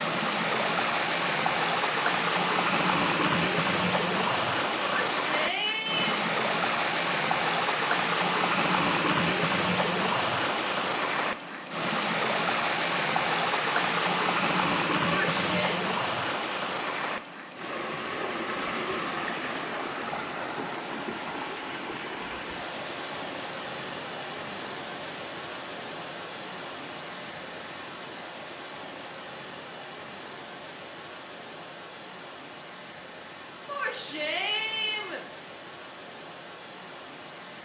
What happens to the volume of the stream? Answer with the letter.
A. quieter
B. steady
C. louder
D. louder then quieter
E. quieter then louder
A.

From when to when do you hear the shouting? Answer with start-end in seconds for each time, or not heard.
5.0-6.2, 15.1-15.8, 33.6-35.2.